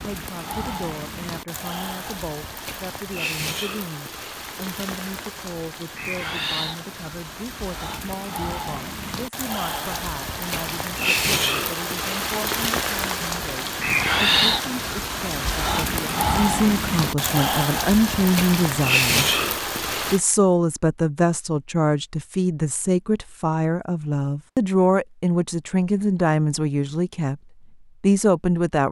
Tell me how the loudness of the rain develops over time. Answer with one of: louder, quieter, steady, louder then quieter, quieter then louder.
louder.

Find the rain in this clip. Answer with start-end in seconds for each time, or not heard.
0.0-20.2.